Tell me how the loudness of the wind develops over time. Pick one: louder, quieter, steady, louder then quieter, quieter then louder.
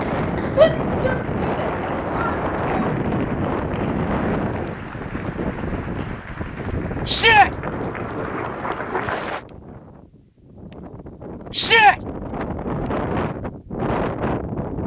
quieter then louder.